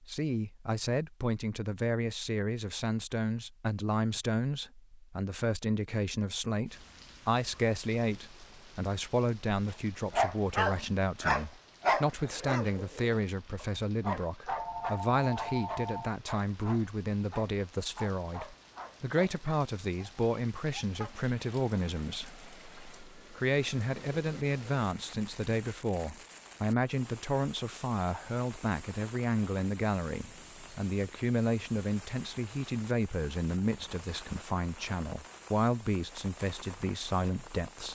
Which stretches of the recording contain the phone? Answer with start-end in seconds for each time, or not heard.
14.4-16.1.